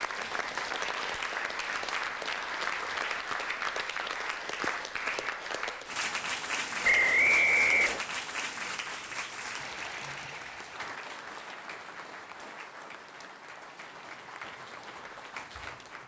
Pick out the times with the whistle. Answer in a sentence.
You can hear the whistle from 6.8 to 8.0 s.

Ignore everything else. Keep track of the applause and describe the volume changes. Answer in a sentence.
The loudness of the applause goes down.